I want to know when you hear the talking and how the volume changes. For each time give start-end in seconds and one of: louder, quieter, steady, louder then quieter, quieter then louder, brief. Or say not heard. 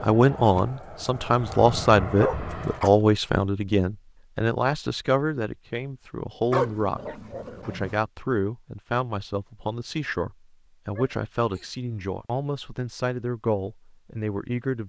0.0-14.8 quieter.